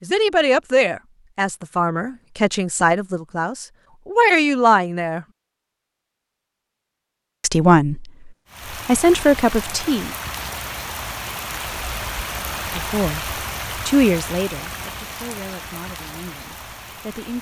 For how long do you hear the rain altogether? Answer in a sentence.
The rain can be heard for 9 seconds in total.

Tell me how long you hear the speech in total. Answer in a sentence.
The speech can be heard for 12 seconds in total.